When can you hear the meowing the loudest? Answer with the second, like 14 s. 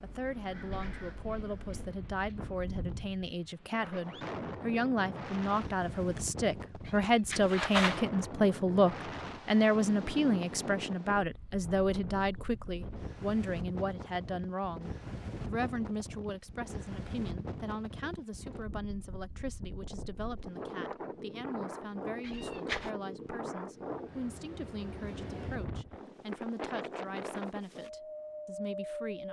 8 s.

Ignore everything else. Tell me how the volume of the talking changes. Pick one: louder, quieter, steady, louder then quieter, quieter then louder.
louder then quieter.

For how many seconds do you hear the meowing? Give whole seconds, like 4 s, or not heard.
2 s.